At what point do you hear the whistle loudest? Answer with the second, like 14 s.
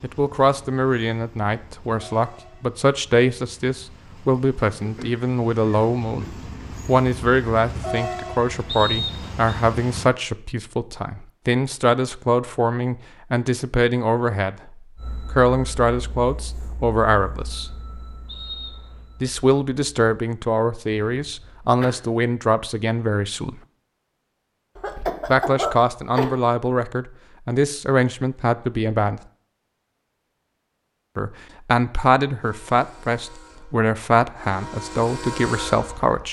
9 s.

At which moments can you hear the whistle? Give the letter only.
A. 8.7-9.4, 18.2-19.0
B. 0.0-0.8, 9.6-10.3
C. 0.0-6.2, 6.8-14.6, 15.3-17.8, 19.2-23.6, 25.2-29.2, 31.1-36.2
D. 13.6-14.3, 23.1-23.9
A.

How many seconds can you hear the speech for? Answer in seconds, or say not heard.
30 s.